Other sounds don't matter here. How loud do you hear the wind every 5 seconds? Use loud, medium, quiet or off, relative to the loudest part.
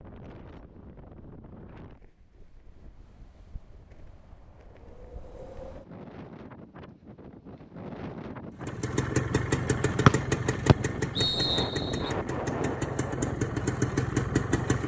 quiet, medium, loud.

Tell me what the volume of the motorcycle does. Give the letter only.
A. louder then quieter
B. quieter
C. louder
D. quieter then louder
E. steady
D.